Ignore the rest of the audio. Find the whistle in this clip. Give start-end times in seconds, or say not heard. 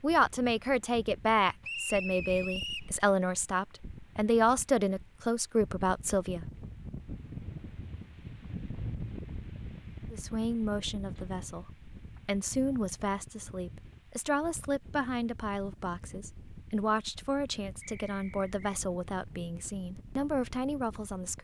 1.6-2.9, 17.8-18.6.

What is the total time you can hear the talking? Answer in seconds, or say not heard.
18 s.